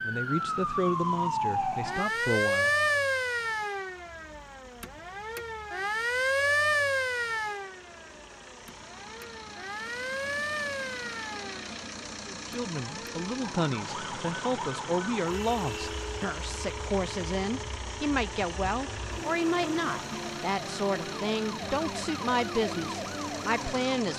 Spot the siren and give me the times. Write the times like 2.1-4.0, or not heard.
0.0-24.1.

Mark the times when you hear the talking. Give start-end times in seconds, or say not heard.
0.0-2.7, 12.2-24.1.